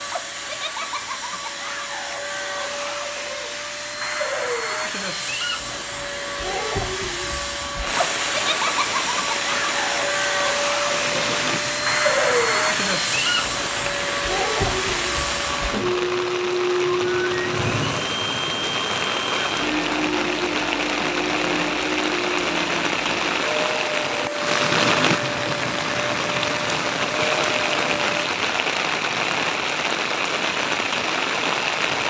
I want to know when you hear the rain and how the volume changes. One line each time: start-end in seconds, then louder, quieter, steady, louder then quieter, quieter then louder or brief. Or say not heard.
7.8-32.0 louder.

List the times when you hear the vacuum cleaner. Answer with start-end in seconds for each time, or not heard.
0.0-28.2.